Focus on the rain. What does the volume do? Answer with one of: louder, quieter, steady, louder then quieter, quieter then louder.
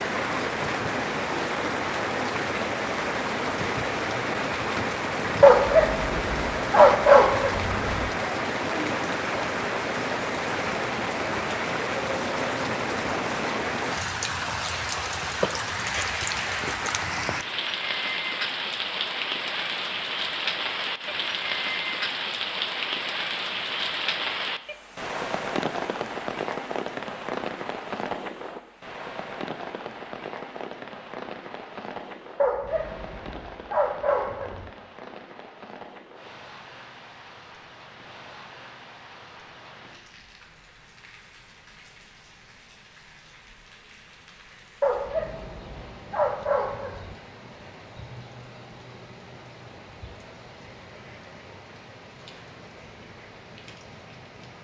quieter.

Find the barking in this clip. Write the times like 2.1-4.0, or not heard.
5.4-8.1, 32.4-34.7, 44.8-47.1.